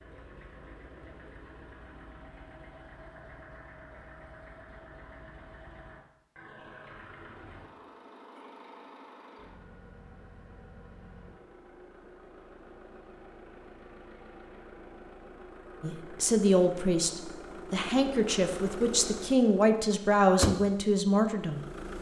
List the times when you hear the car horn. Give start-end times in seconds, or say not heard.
not heard.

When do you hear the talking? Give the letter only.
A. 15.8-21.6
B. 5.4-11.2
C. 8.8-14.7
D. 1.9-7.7
A.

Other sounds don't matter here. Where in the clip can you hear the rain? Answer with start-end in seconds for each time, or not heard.
not heard.